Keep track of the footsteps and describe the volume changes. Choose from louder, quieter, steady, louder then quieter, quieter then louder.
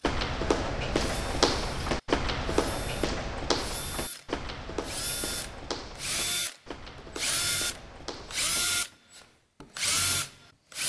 quieter.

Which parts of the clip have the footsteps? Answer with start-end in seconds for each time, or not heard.
0.0-8.7.